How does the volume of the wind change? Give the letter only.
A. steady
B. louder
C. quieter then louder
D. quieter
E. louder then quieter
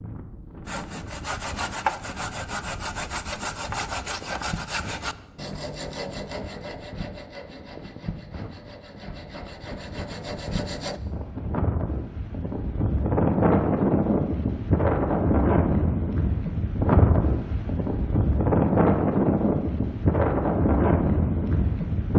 B.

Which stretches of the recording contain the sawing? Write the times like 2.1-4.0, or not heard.
0.7-11.0.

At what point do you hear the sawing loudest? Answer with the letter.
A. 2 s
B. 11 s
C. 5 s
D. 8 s
A.